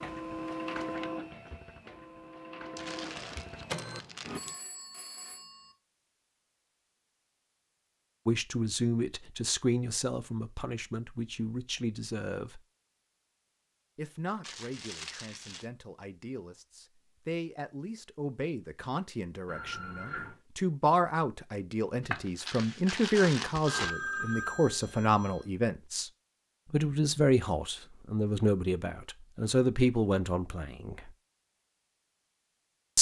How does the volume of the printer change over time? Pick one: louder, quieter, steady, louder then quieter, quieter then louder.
quieter then louder.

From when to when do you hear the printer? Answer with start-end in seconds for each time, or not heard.
0.0-4.4.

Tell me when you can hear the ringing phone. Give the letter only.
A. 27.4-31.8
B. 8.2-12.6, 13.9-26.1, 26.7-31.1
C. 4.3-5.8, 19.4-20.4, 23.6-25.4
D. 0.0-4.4
C.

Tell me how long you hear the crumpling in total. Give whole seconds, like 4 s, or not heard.
5 s.